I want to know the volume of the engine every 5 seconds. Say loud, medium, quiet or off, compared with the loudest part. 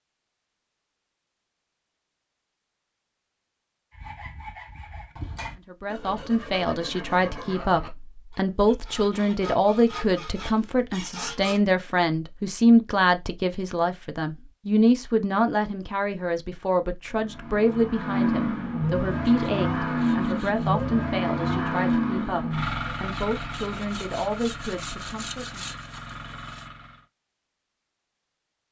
off, off, off, loud, loud, quiet.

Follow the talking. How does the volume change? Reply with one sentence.
The loudness of the talking goes down.